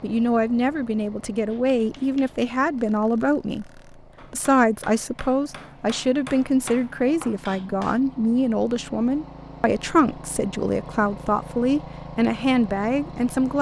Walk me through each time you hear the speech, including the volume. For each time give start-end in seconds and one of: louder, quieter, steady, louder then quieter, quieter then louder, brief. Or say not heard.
0.0-13.5 steady.